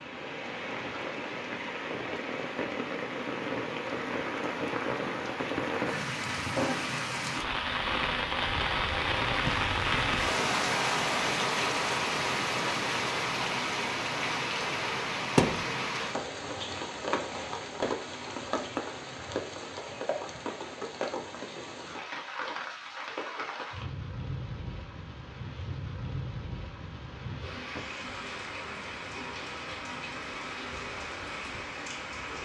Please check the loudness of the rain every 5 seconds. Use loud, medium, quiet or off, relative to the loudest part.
medium, loud, loud, medium, medium, medium, medium.